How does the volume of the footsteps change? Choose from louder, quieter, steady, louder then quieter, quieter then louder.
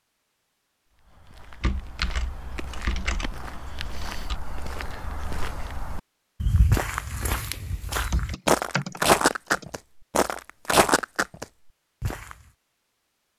louder.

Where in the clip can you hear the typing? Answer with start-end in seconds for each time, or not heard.
1.6-4.4, 8.1-9.8.